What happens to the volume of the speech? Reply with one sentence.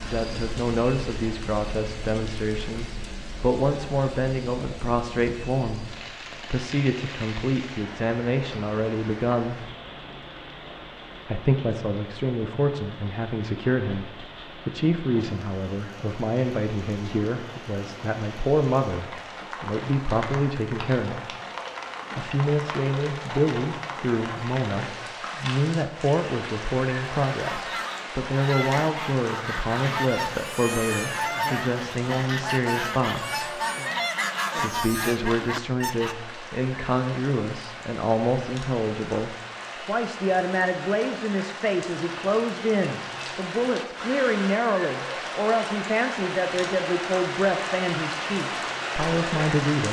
The volume of the speech stays about the same.